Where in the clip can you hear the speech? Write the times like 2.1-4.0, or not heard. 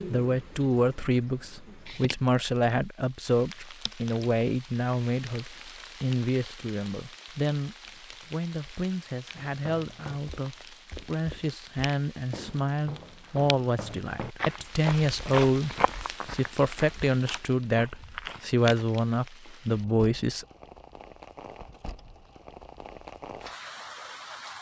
0.1-20.4.